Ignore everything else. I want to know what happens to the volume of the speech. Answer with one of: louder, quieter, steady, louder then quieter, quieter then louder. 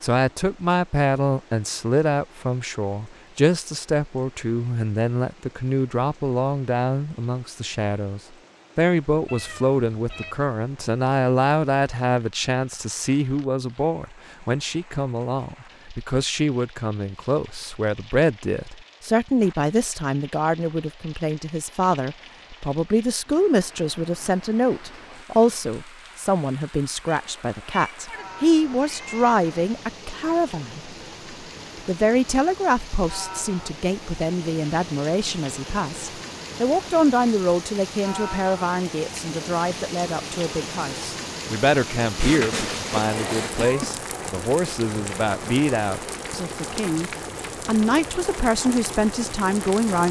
steady.